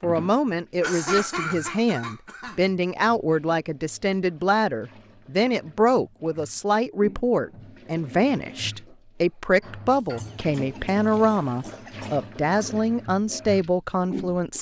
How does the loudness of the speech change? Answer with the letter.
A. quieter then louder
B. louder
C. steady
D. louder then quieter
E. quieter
C.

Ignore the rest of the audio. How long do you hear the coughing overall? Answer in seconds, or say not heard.
4 s.